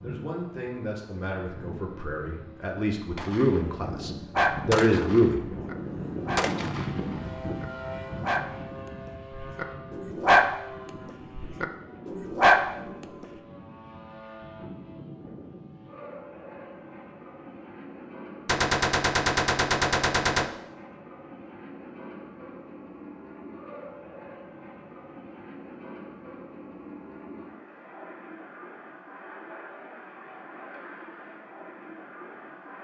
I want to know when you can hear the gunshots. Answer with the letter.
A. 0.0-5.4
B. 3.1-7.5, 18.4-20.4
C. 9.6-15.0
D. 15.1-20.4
B.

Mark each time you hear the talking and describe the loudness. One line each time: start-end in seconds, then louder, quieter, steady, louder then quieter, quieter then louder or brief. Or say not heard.
0.0-5.4 louder.